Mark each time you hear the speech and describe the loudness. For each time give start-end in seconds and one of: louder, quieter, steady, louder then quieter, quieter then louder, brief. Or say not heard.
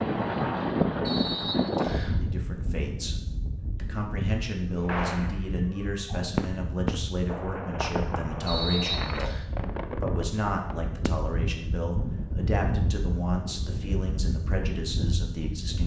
2.1-15.8 steady.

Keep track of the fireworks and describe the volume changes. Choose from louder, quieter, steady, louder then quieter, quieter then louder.
louder then quieter.